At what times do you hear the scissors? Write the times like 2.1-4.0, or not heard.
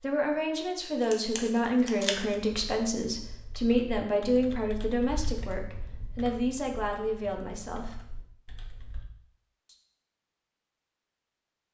1.0-2.2.